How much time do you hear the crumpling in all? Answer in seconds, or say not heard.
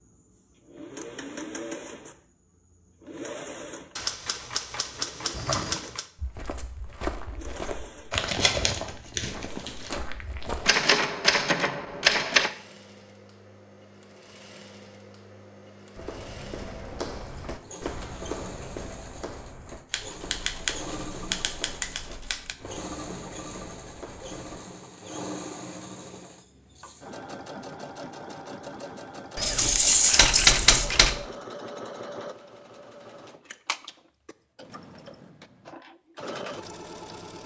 3 s.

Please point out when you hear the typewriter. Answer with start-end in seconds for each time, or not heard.
4.0-6.0, 10.7-12.5, 19.9-22.6, 29.4-31.2.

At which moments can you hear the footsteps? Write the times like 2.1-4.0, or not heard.
5.3-10.8, 15.9-24.6.